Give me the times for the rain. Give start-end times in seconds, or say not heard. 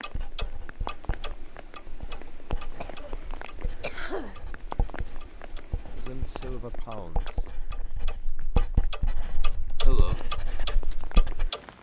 0.0-11.7.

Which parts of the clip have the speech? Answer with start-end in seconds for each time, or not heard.
6.0-7.5.